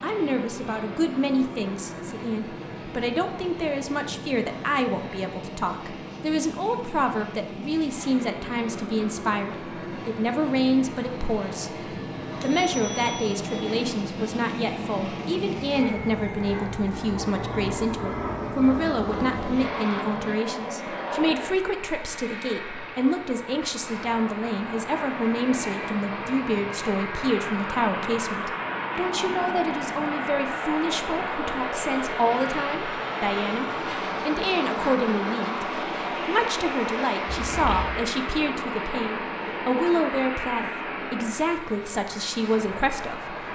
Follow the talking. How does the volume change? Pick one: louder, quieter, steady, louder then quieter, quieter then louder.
steady.